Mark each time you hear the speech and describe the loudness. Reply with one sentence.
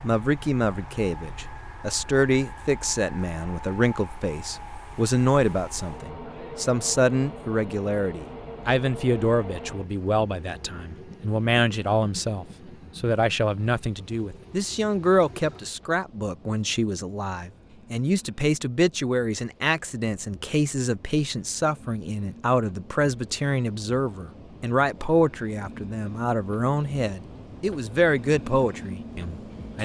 The speech can be heard from 0.0 to 29.8 s, at a steady volume.